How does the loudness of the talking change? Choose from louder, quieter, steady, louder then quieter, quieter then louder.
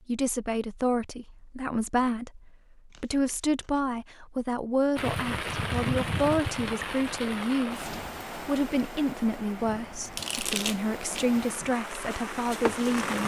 steady.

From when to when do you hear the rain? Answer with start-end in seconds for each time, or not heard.
5.0-13.2.